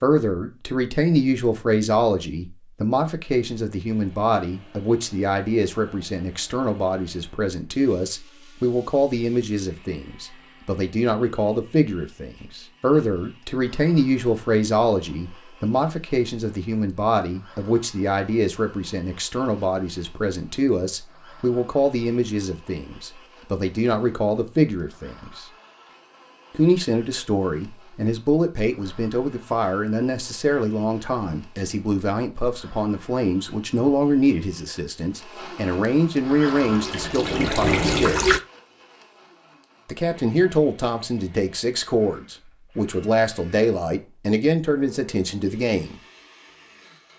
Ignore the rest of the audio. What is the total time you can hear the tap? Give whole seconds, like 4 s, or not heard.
2 s.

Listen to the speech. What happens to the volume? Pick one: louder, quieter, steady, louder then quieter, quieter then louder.
steady.